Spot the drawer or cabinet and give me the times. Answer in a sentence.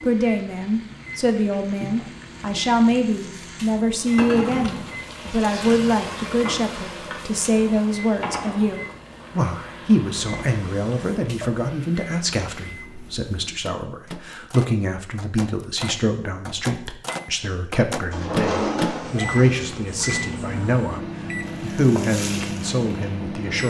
The drawer or cabinet can be heard from 4.2 to 6.1 s, from 10.2 to 11.1 s and from 18.1 to 19.6 s.